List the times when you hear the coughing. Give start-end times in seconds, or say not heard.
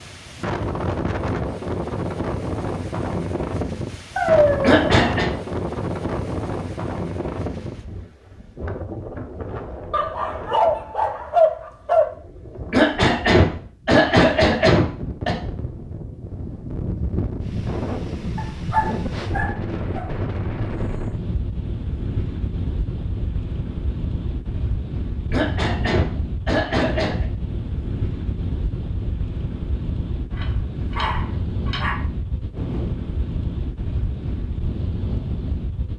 4.6-5.3, 12.7-15.3, 25.3-27.2.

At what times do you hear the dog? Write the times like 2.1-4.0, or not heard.
4.2-4.8, 9.9-12.1, 18.4-20.1, 30.4-32.0.